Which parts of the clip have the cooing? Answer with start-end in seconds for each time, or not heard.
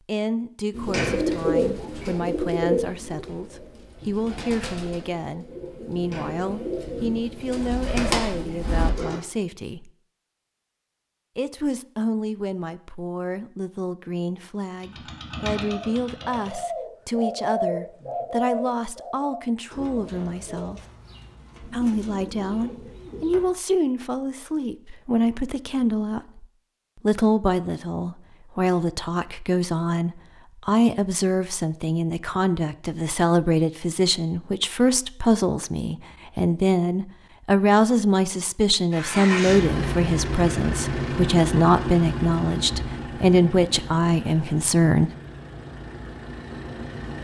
0.7-9.2, 15.5-23.5.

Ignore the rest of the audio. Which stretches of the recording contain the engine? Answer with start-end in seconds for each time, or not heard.
14.8-16.6, 38.9-47.2.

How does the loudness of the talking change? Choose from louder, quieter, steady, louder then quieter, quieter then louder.
louder.